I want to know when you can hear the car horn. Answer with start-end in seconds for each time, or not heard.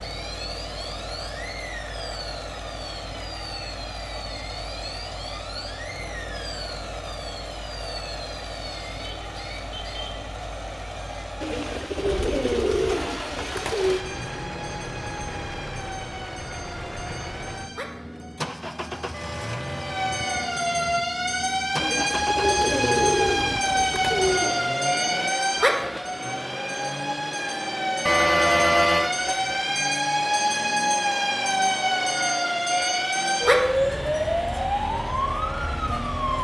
9.0-10.3, 19.1-20.6, 28.1-29.1.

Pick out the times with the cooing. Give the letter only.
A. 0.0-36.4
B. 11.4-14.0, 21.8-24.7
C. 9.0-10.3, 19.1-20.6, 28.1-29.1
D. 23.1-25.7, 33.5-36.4
B.